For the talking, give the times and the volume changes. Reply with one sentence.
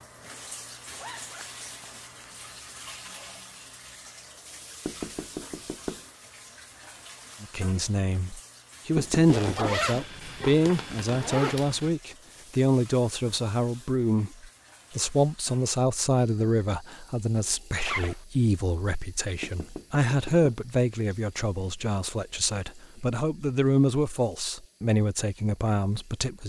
You can hear the talking from 7.4 to 26.4 s, at a steady volume.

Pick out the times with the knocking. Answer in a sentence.
You can hear the knocking from 4.8 to 6.0 s, from 8.9 to 9.8 s and from 19.4 to 20.6 s.